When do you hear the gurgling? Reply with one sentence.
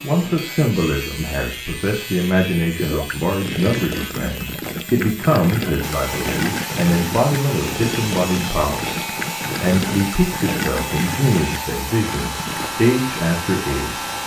The gurgling can be heard from 2.8 to 12.7 s.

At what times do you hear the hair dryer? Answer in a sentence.
You can hear the hair dryer from 5.8 to 14.2 s.